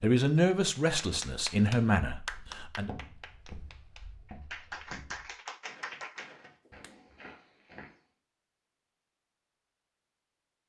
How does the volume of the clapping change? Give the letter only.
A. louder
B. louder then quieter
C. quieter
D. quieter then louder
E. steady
D.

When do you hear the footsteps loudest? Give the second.
3 s.